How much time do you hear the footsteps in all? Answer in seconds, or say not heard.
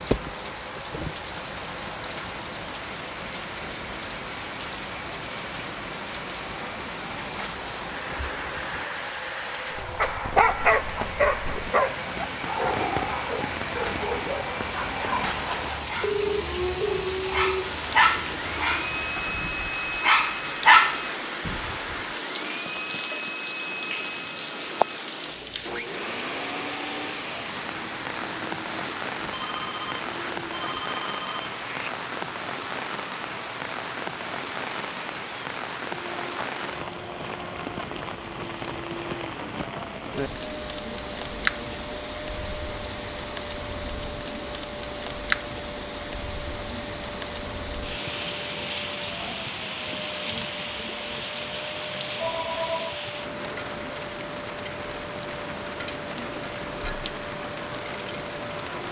not heard.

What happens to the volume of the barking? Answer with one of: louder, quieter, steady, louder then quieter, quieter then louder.
quieter then louder.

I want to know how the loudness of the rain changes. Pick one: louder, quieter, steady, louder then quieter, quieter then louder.
steady.